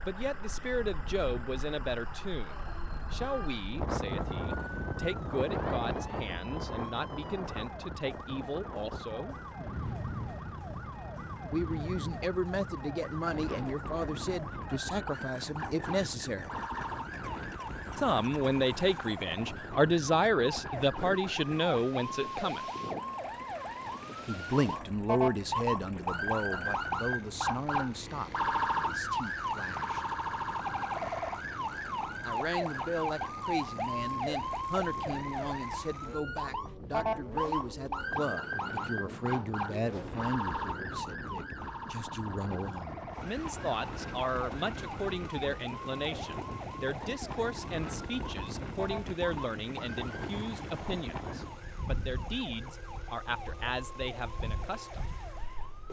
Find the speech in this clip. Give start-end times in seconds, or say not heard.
0.0-9.4, 11.5-16.5, 17.9-22.6, 24.2-30.1, 32.2-55.1.